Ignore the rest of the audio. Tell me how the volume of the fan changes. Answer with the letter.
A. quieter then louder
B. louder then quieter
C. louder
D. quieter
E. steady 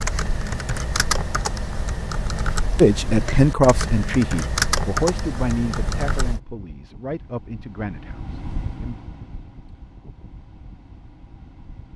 B.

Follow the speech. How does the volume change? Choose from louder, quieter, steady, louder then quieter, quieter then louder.
quieter.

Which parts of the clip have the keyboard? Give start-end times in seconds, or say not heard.
0.0-6.4.